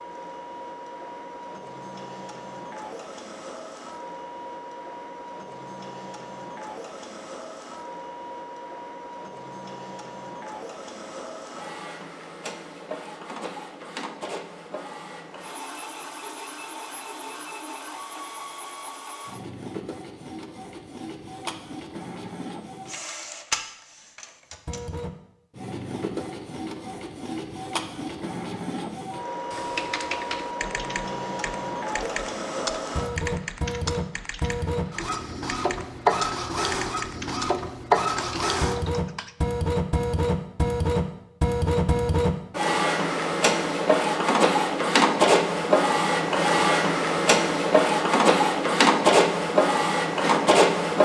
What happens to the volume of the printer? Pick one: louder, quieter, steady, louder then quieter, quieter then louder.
louder.